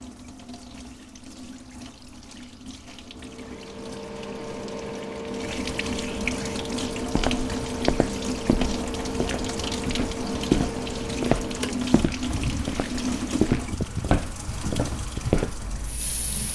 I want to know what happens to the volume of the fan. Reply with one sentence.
The loudness of the fan stays about the same.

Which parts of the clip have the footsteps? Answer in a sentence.
You can hear the footsteps from 7.0 to 15.6 s.